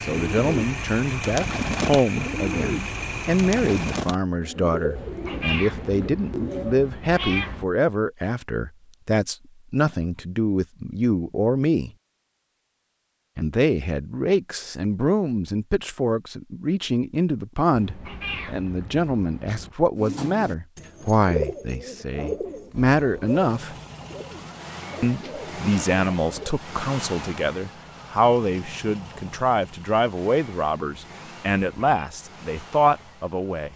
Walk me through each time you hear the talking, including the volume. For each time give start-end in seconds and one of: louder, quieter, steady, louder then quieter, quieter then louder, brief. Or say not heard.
0.0-11.9 steady
13.3-23.8 steady
25.0-33.7 steady.